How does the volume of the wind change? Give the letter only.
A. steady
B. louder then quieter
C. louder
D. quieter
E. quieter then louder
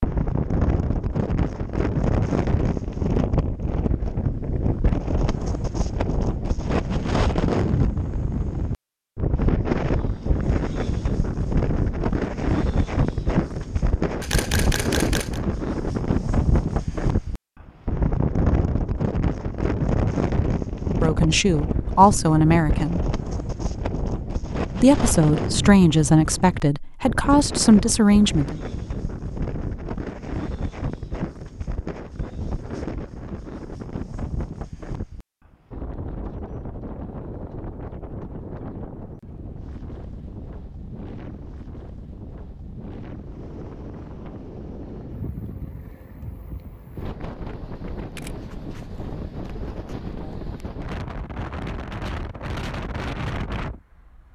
D.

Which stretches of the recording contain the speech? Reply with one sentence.
You can hear the speech from 21.0 to 23.0 s and from 24.8 to 28.6 s.